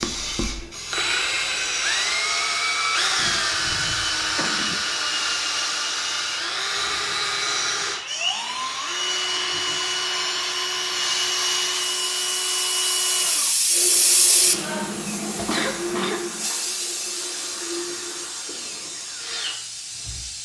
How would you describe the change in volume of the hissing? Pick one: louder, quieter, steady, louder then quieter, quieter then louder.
louder then quieter.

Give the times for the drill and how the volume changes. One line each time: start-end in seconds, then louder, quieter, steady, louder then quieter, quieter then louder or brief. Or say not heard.
0.0-20.4 quieter.